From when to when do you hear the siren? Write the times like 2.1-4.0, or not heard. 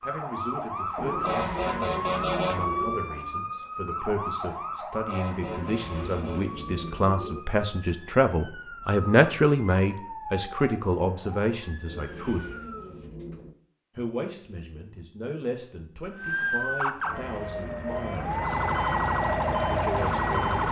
0.0-12.9, 16.1-20.6.